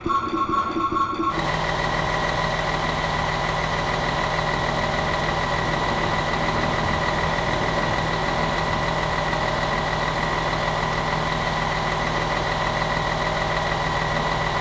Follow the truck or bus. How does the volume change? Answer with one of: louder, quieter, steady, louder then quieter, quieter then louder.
steady.